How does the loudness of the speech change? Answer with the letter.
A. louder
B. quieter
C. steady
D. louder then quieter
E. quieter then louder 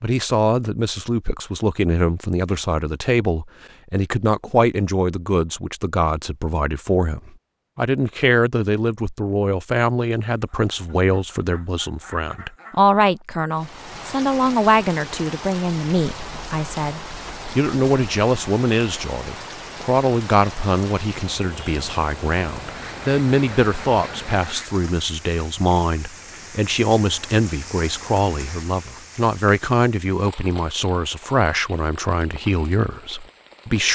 C.